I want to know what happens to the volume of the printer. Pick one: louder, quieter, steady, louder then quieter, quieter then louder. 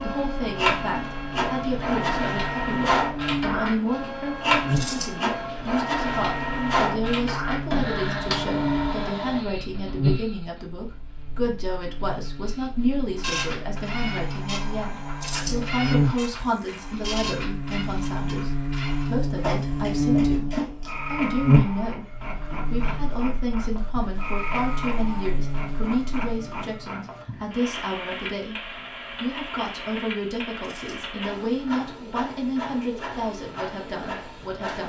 quieter.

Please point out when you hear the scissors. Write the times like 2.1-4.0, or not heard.
4.8-5.2, 15.2-15.7, 30.6-31.1.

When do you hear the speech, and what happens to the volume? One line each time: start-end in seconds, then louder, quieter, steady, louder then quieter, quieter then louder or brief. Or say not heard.
0.0-34.8 steady.